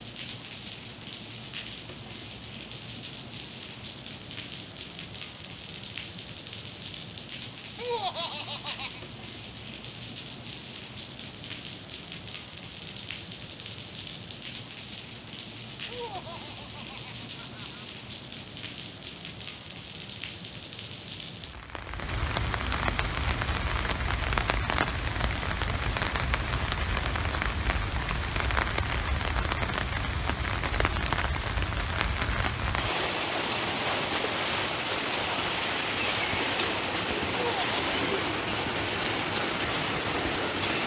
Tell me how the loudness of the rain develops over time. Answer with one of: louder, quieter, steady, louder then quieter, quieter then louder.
louder.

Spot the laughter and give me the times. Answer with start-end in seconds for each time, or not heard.
7.8-9.0, 15.8-17.9, 37.3-37.8.